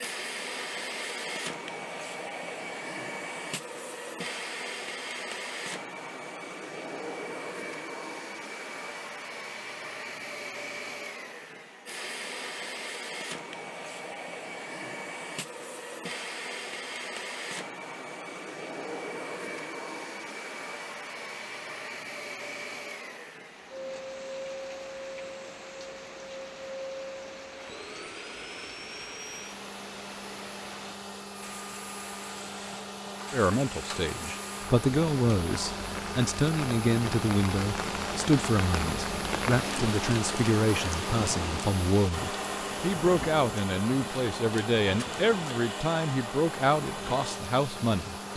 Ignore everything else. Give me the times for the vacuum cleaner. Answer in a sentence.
The vacuum cleaner can be heard from 0.0 to 48.3 s.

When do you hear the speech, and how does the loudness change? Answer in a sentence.
The speech can be heard from 33.3 to 48.3 s, at a steady volume.